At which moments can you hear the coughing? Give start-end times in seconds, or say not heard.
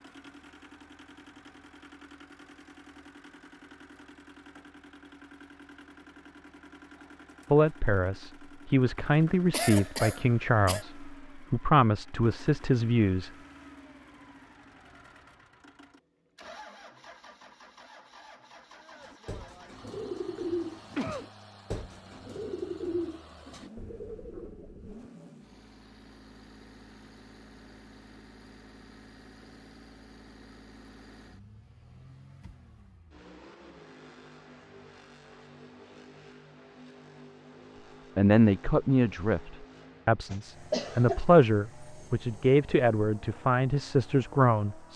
9.5-10.8, 20.5-21.3, 40.2-41.2.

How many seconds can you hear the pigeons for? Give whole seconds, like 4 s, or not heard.
6 s.